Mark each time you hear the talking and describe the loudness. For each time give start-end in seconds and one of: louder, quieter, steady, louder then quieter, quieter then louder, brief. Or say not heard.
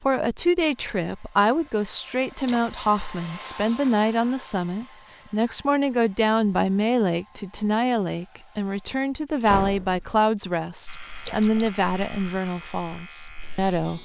0.0-13.9 steady.